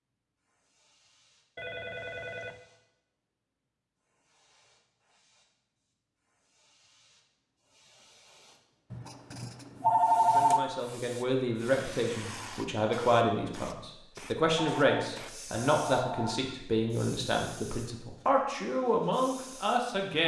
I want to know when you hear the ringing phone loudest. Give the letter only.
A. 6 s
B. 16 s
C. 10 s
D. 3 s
C.